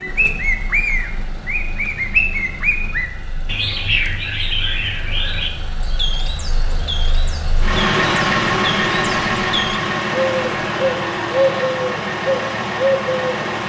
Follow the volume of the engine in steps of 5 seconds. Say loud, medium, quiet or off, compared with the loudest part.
quiet, loud, loud.